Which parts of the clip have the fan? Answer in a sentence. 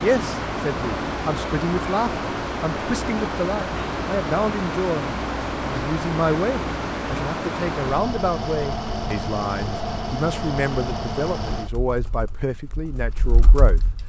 You can hear the fan from 0.0 to 14.0 s.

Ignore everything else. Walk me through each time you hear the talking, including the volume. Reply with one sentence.
The talking can be heard from 0.0 to 13.8 s, at a steady volume.